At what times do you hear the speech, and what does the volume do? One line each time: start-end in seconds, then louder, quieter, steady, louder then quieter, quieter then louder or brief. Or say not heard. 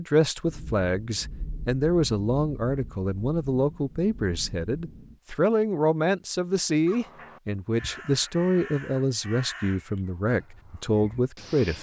0.0-11.7 steady.